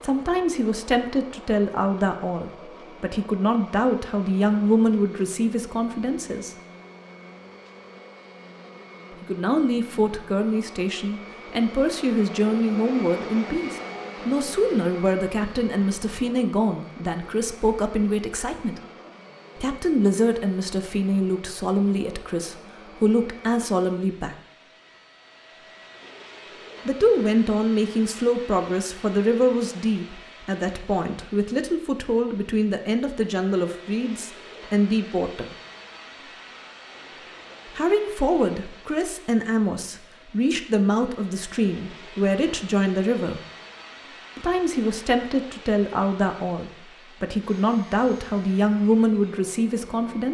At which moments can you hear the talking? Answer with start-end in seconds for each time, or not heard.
0.0-6.5, 9.2-18.8, 19.6-24.4, 26.9-35.5, 37.8-43.4, 44.4-50.3.